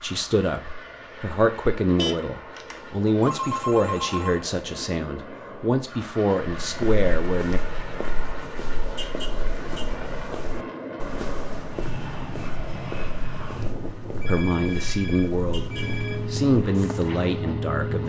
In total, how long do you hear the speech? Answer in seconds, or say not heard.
11 s.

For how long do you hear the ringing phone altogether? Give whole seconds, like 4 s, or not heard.
4 s.